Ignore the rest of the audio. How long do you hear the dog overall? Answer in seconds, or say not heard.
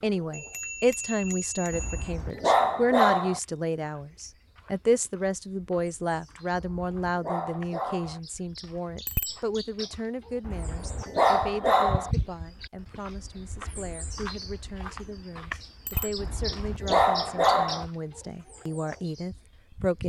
7 s.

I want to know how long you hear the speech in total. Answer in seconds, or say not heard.
20 s.